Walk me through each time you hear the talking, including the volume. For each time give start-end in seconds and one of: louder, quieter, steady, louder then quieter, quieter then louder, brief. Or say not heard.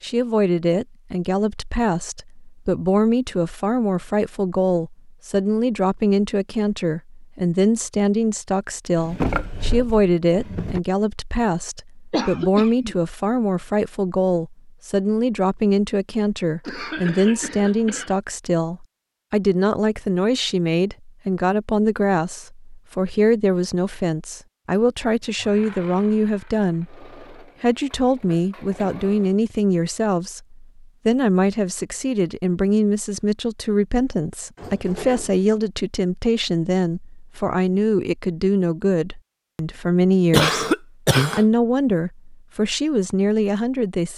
0.0-44.1 steady.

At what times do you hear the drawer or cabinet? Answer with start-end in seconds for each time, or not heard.
8.9-10.8, 34.5-35.5.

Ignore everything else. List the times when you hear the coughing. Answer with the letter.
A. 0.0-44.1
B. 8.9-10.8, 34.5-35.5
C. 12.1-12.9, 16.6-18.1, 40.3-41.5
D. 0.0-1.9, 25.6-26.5
C.